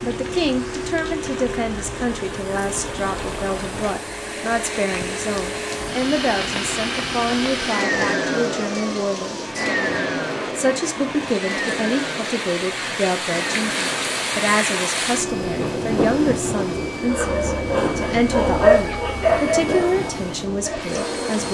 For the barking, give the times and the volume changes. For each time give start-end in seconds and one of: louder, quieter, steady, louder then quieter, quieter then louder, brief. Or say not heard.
17.1-21.2 louder then quieter.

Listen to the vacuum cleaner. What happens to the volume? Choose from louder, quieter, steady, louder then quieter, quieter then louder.
louder then quieter.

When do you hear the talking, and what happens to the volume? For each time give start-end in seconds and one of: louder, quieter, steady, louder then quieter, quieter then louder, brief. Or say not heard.
0.0-9.7 steady
10.6-21.4 steady.